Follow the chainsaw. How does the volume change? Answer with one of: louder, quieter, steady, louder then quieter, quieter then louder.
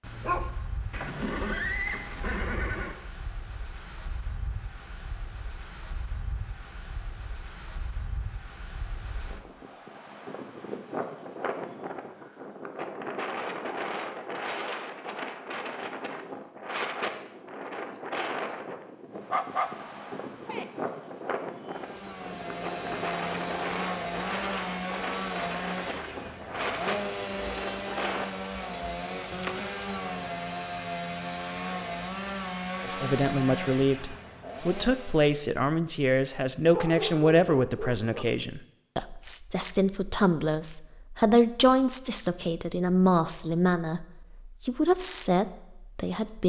steady.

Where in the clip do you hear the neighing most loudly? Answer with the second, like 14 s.
2 s.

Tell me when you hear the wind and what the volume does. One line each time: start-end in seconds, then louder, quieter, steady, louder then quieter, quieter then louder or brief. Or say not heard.
0.0-28.3 louder.